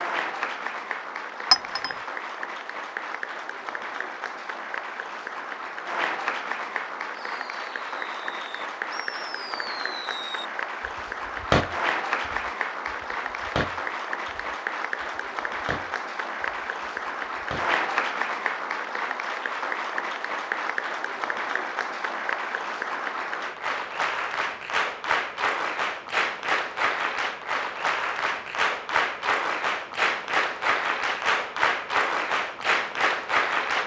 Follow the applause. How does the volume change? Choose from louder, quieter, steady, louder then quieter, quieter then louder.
louder.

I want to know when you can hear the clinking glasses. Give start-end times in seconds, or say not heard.
1.5-1.9.